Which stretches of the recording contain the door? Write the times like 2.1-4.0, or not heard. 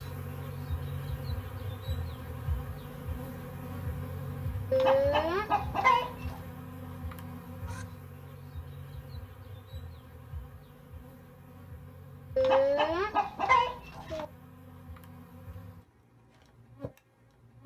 not heard.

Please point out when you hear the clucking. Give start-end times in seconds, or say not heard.
4.7-6.4, 12.3-14.2.